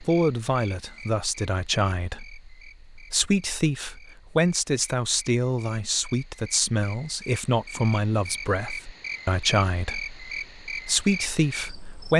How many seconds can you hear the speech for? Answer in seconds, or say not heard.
12 s.